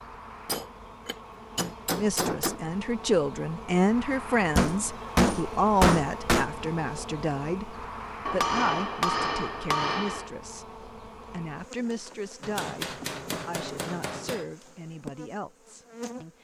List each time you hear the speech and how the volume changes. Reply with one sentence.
The speech can be heard from 1.9 to 16.3 s, getting quieter.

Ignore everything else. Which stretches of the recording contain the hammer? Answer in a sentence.
You can hear the hammer from 0.5 to 2.5 s, from 4.5 to 6.5 s, from 8.2 to 10.3 s and from 12.4 to 14.4 s.